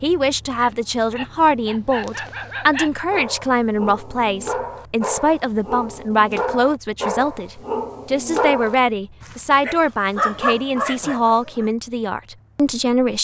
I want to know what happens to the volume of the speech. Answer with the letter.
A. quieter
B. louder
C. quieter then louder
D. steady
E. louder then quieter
D.